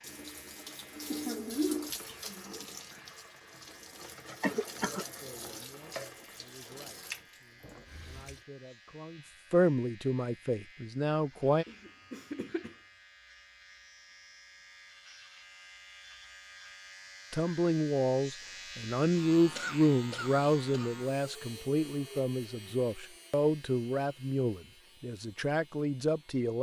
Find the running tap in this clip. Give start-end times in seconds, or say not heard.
0.0-8.4.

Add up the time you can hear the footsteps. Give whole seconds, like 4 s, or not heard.
not heard.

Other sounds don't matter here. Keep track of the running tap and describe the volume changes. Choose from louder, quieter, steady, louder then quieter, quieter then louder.
quieter.